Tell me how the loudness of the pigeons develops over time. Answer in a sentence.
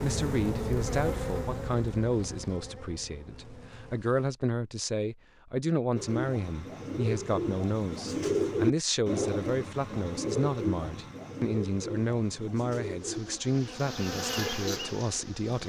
The volume of the pigeons goes up, then down.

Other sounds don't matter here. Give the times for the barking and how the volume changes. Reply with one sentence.
The barking can't be heard in this clip.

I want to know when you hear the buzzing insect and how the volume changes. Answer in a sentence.
You can hear the buzzing insect from 0.0 to 4.3 s, getting quieter; and briefly from 12.9 to 15.6 s.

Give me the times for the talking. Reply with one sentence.
You can hear the talking from 0.0 to 15.6 s.